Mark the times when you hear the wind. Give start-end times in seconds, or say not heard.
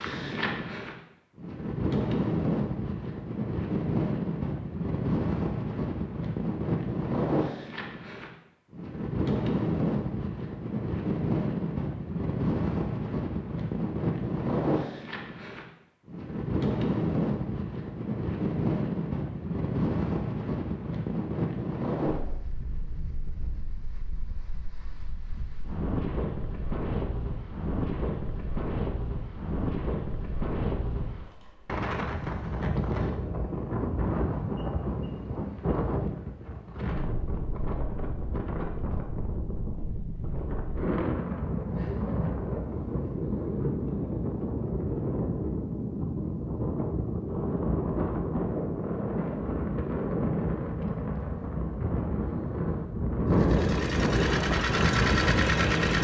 0.0-55.9.